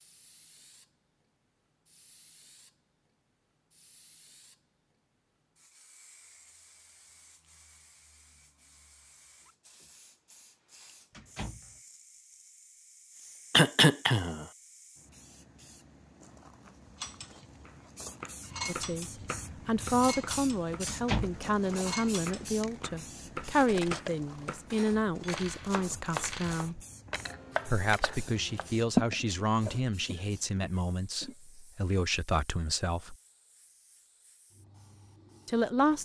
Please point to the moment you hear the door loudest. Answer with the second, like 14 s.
21 s.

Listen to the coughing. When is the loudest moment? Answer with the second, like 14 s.
14 s.